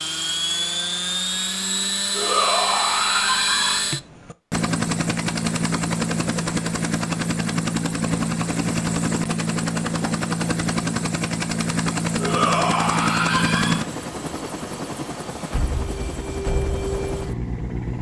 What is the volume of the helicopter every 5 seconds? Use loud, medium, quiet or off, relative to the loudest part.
loud, loud, loud, medium.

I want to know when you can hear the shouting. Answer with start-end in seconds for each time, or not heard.
2.1-3.9, 12.2-13.8.